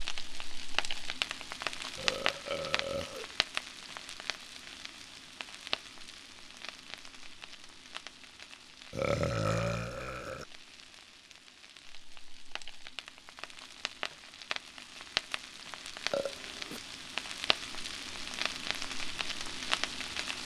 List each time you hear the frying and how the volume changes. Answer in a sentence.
You can hear the frying from 0.0 to 20.4 s, getting quieter then louder.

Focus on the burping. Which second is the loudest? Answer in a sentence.
The loudest moment of the burping is at 9 seconds.